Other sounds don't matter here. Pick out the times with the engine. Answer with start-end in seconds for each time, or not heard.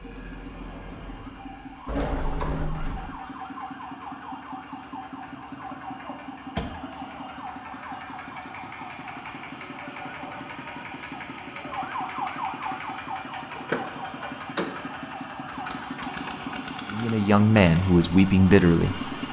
0.0-19.2.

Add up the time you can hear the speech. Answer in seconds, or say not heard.
2 s.